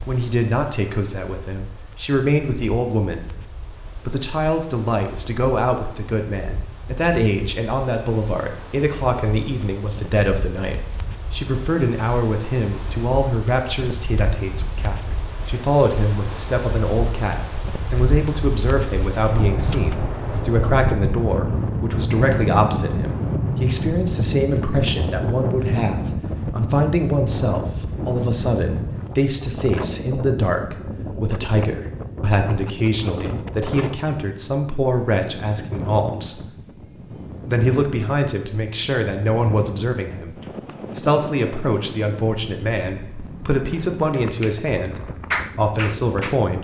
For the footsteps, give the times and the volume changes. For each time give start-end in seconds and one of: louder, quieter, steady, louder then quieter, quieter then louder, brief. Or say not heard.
not heard.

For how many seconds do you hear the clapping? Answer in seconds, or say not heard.
2 s.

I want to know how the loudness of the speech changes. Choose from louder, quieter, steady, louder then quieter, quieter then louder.
steady.